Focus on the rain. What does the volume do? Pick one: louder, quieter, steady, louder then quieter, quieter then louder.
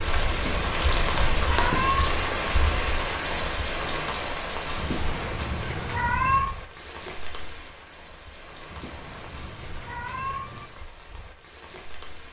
quieter.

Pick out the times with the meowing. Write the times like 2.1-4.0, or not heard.
0.3-2.2, 4.8-6.5, 8.7-10.7.